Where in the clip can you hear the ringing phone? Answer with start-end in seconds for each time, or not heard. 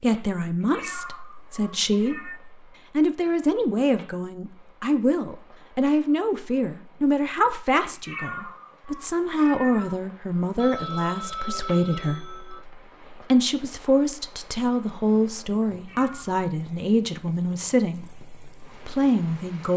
10.6-12.6.